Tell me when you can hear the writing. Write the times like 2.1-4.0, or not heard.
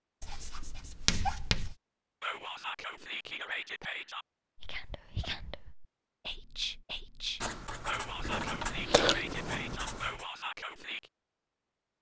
0.2-1.8, 7.4-10.2.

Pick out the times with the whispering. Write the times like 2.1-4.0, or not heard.
2.2-11.1.